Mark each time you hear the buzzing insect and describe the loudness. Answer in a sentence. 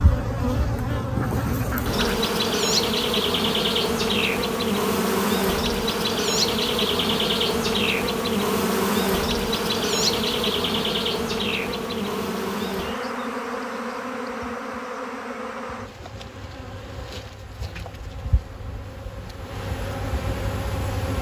The buzzing insect can be heard from 0.0 to 21.1 s, getting quieter.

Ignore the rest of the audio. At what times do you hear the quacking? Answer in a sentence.
You can hear the quacking from 1.1 to 2.1 s.